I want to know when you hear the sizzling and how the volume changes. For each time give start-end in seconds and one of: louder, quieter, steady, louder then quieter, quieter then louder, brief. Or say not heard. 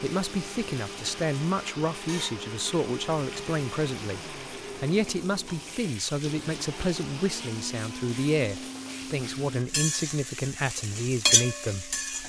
0.0-12.2 louder.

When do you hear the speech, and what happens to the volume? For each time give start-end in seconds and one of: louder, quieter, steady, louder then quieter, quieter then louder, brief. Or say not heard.
0.0-12.2 steady.